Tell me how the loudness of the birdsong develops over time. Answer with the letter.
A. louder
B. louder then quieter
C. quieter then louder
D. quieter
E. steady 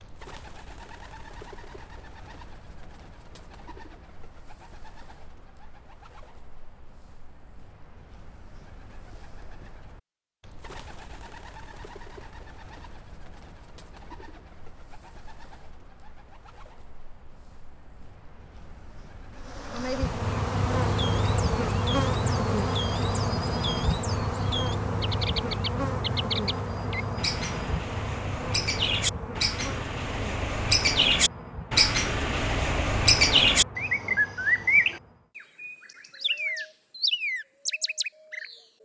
A.